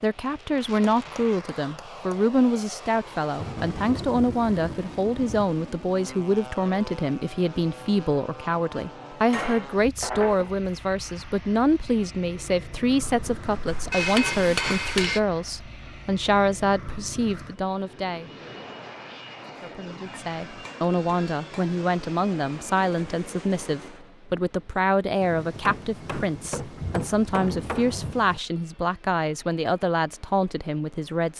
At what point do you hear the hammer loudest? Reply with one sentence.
The loudest moment of the hammer is at 14 seconds.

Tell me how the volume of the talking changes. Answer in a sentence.
The loudness of the talking stays about the same.